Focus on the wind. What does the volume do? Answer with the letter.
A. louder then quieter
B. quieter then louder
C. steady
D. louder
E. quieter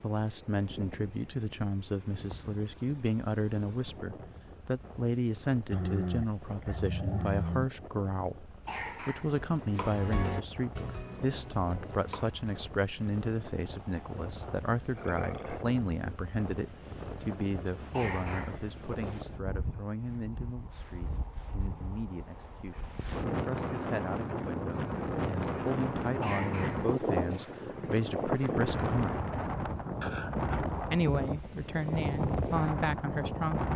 D.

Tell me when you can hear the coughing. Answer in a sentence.
The coughing can be heard from 8.7 to 9.3 s, from 17.9 to 19.2 s and from 26.2 to 27.5 s.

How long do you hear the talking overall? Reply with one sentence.
You can hear the talking for 32 seconds altogether.